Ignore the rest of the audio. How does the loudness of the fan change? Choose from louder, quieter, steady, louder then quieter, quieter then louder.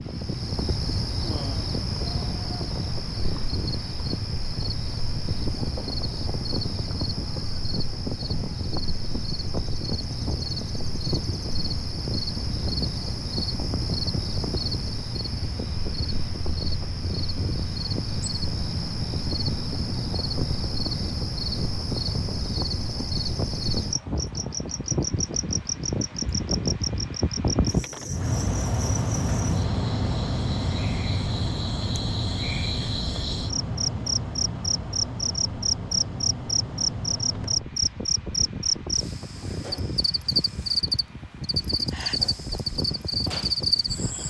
louder then quieter.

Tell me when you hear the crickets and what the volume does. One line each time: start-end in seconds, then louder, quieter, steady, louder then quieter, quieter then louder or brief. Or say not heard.
0.0-44.2 louder.